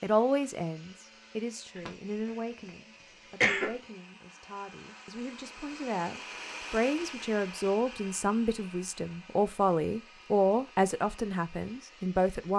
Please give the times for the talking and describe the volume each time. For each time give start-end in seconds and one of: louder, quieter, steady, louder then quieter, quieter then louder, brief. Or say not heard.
0.0-12.5 quieter then louder.